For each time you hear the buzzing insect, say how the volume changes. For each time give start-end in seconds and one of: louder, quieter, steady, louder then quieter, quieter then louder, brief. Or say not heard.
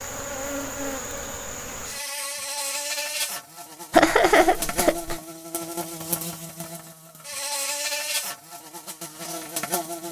0.0-10.0 steady.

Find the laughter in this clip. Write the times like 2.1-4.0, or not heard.
3.9-5.2.